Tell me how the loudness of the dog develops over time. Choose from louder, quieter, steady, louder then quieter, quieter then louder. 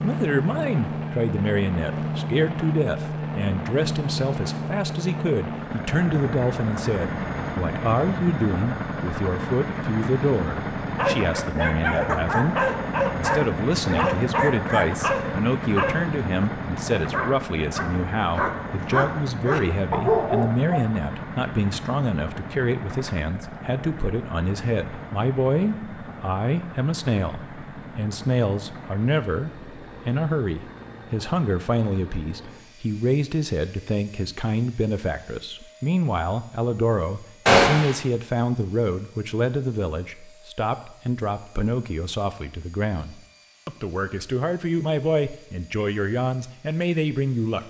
quieter then louder.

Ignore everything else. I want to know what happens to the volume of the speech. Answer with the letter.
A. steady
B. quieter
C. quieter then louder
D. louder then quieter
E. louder
A.